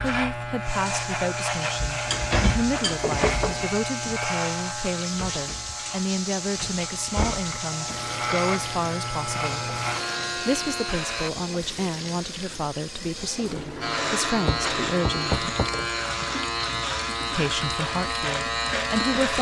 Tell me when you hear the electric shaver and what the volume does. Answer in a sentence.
You can hear the electric shaver from 0.0 to 11.3 s, getting quieter then louder; and from 13.8 to 19.3 s, at a steady volume.